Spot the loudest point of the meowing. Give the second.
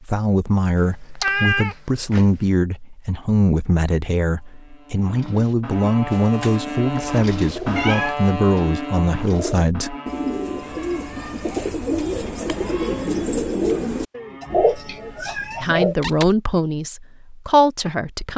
1 s.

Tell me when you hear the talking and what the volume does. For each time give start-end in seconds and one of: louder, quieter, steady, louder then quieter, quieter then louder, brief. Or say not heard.
0.0-9.9 steady
15.6-18.3 brief.